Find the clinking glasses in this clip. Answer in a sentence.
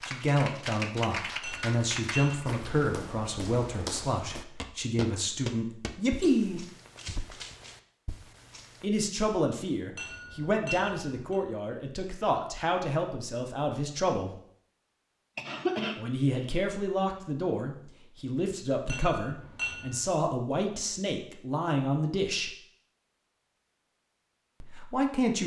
The clinking glasses can be heard from 1.4 to 2.5 s, from 9.9 to 11.4 s and from 18.9 to 20.1 s.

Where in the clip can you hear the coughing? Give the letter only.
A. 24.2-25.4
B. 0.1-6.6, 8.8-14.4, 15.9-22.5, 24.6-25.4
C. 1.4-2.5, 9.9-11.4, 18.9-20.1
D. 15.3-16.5
D.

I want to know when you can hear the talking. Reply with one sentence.
You can hear the talking from 0.1 to 6.6 s, from 8.8 to 14.4 s, from 15.9 to 22.5 s and from 24.6 to 25.4 s.